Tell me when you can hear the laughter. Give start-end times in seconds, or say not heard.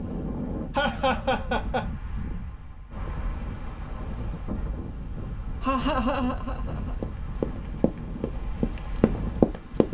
0.8-1.9, 5.6-7.0.